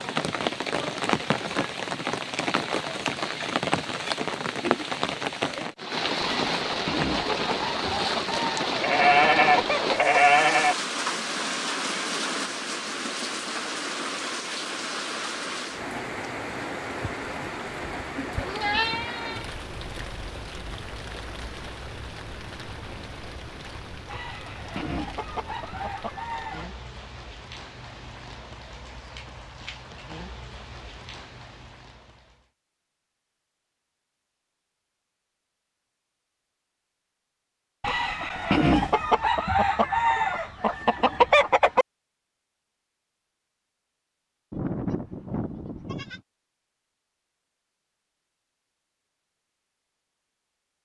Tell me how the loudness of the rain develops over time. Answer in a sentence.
The volume of the rain goes down.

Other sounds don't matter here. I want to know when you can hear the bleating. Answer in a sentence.
The bleating can be heard from 8.8 to 10.8 s, from 17.0 to 19.4 s and from 44.5 to 46.2 s.